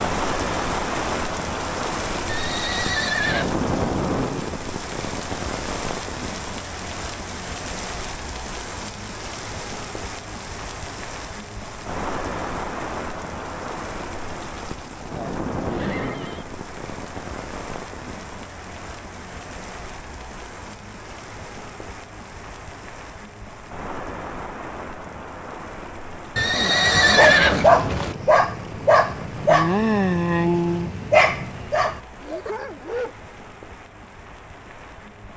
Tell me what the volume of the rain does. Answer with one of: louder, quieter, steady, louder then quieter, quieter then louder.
quieter.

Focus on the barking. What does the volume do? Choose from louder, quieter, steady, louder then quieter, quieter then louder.
quieter.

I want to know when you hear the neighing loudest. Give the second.
27 s.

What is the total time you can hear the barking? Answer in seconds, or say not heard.
6 s.